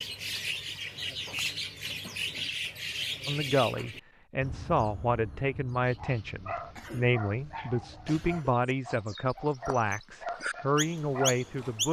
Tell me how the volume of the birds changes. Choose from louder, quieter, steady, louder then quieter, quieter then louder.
quieter then louder.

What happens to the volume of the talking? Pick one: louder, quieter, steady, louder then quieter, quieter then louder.
steady.